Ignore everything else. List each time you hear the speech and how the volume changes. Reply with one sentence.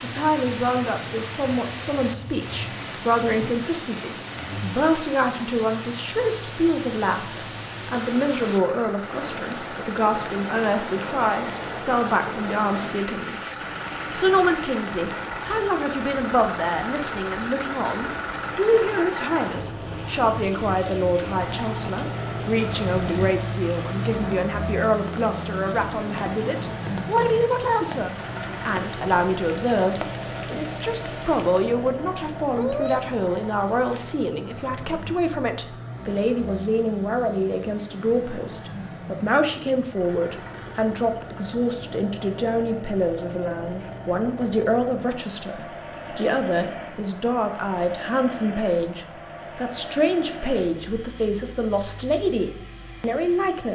You can hear the speech from 0.0 to 53.6 s, at a steady volume.